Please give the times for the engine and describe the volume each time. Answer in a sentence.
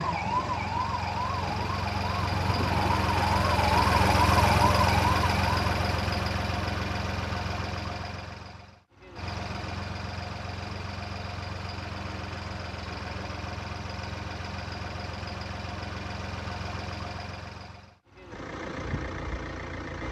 The engine can be heard from 0.0 to 20.0 s, getting quieter.